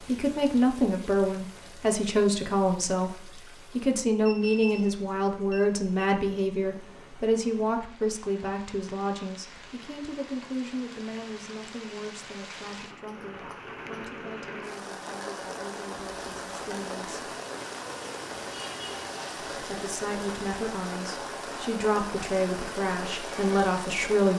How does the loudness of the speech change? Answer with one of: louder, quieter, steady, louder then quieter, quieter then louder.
quieter then louder.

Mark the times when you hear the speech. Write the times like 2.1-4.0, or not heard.
0.0-17.2, 19.6-24.3.